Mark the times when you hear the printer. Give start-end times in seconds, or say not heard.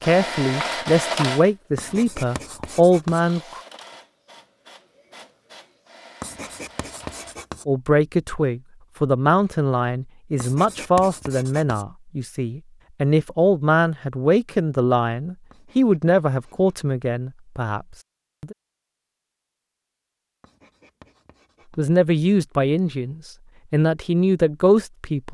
0.0-7.4.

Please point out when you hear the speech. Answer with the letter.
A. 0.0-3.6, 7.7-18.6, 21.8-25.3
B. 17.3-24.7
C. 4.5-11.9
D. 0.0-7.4
A.